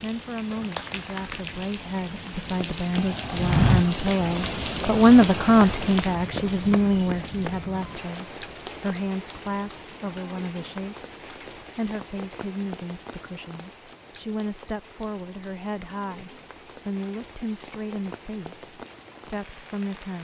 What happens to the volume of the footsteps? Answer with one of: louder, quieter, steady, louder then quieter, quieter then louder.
quieter.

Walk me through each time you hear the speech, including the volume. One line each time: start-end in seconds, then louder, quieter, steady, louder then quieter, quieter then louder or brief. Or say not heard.
0.0-20.1 louder then quieter.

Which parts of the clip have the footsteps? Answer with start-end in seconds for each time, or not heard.
2.2-8.0.